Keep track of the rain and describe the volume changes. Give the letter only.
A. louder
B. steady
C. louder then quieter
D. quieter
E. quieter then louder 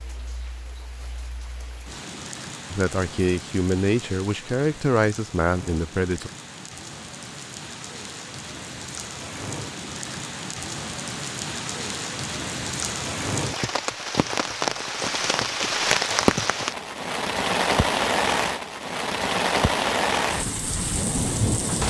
A.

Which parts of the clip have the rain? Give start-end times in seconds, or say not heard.
0.0-21.8.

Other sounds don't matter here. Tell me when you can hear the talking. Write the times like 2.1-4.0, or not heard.
2.7-6.3.